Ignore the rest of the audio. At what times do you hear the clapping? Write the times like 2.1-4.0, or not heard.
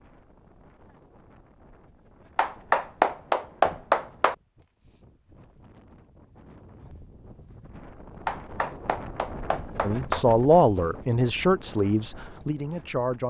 2.4-4.3, 8.2-10.2.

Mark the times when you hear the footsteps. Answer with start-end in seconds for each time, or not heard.
not heard.